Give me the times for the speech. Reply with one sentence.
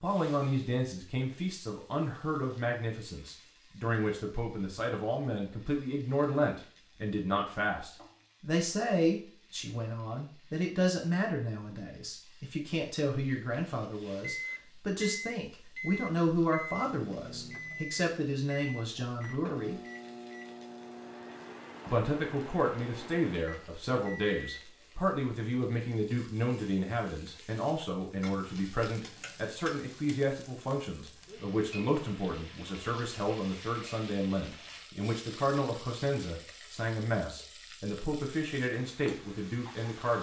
You can hear the speech from 0.0 to 19.8 s and from 21.9 to 40.1 s.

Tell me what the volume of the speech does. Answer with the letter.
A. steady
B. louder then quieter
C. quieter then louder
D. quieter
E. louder
A.